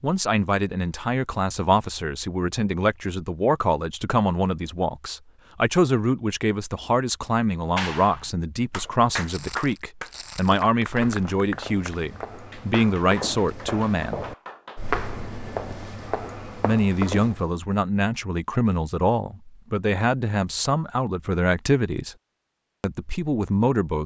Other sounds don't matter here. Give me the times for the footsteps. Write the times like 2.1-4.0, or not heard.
8.8-17.5.